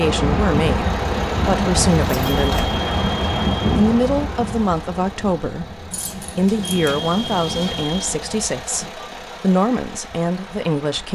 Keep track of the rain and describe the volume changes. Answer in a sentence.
The volume of the rain goes down.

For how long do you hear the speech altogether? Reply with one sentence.
The speech can be heard for 10 seconds in total.